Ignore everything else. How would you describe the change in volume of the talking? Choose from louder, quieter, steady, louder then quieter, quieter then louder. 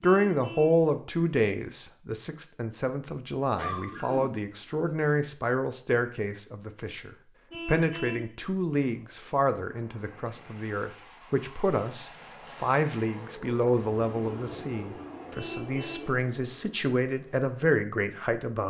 steady.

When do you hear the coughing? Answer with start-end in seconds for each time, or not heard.
3.5-5.0.